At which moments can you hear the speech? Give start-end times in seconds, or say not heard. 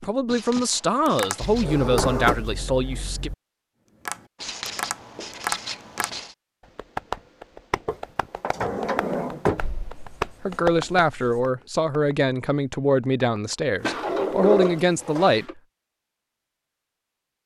0.0-3.3, 10.4-15.4.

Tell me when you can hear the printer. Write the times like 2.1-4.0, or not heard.
not heard.